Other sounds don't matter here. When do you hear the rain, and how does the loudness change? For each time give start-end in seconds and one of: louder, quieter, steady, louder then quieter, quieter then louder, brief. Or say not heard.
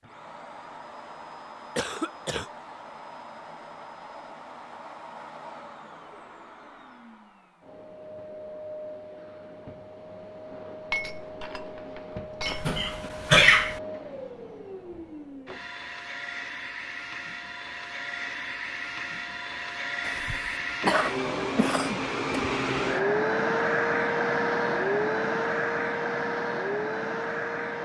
not heard.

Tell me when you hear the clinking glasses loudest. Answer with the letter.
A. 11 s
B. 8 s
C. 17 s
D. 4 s
A.